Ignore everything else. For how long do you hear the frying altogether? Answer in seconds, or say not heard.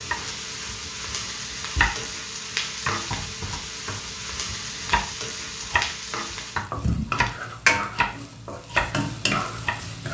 10 s.